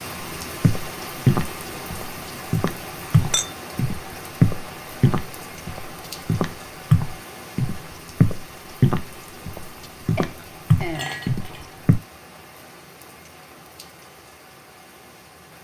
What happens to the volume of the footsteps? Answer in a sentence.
The volume of the footsteps stays about the same.